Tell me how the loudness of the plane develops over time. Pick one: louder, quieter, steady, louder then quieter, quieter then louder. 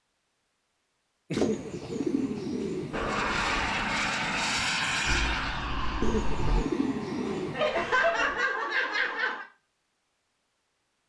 quieter.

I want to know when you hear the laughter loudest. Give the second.
8 s.